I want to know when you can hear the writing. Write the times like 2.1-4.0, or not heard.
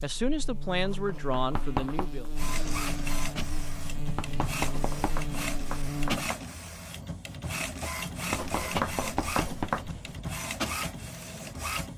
0.7-2.1, 4.5-6.4, 8.2-9.8.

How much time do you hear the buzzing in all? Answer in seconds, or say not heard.
6 s.